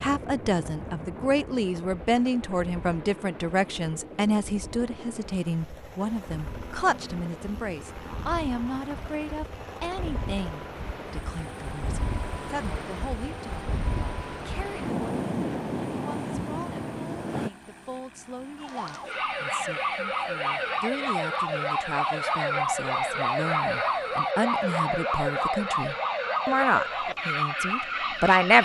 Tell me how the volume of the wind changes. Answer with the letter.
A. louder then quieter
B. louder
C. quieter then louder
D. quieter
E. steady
B.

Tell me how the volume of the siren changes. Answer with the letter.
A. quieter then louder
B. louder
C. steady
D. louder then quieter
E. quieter
C.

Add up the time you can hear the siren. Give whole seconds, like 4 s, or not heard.
10 s.